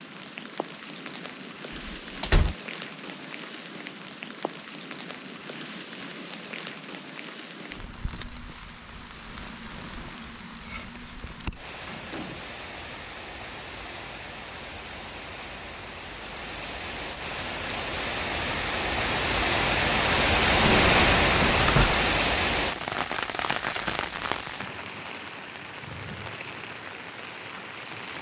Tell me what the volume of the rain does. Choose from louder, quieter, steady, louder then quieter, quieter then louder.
louder then quieter.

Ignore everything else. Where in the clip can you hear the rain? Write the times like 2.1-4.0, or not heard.
0.0-28.1.